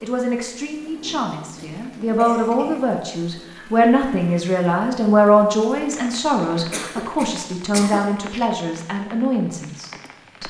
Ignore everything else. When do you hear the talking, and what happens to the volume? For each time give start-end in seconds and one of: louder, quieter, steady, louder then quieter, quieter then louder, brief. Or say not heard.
0.0-10.4 louder then quieter.